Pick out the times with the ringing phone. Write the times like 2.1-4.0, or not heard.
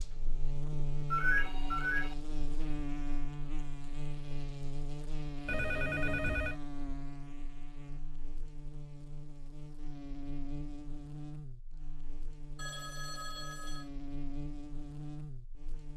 1.1-2.1, 5.5-6.5, 12.6-13.9.